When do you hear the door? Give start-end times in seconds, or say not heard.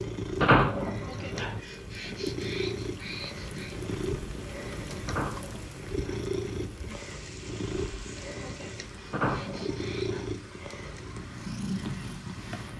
0.4-1.6, 5.0-6.3, 9.1-10.3.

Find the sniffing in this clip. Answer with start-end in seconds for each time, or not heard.
1.0-3.8, 8.3-10.2.